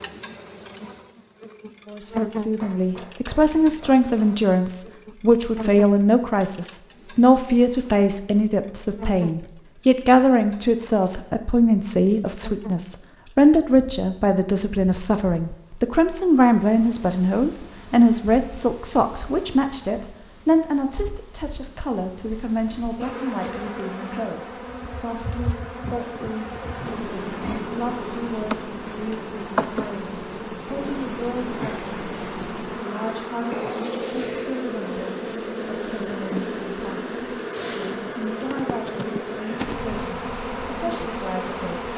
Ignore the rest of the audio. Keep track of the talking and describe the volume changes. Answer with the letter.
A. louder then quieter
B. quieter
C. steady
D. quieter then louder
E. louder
B.